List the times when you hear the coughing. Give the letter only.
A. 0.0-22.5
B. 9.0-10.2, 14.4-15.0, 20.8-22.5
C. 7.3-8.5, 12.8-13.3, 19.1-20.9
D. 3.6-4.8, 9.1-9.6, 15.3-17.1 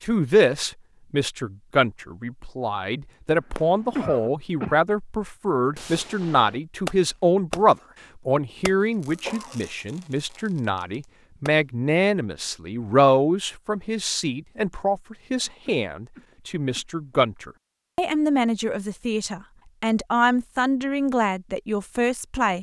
D.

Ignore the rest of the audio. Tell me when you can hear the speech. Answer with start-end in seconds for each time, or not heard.
0.0-22.5.